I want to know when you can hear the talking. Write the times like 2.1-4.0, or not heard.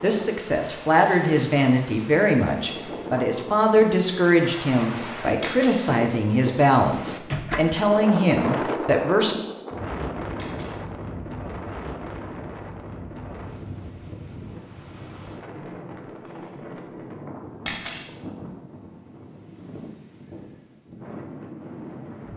0.0-9.4.